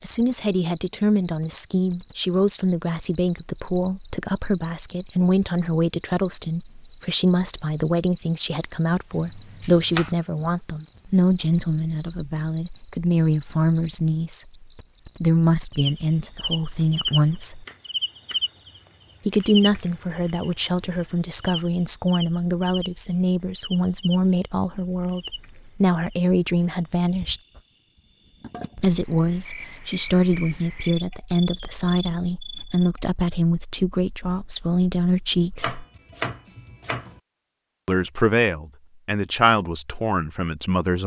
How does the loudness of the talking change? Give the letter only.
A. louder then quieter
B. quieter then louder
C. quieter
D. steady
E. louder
D.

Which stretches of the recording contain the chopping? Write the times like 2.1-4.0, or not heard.
9.1-10.2, 16.4-18.5, 35.5-37.2.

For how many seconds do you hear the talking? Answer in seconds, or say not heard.
36 s.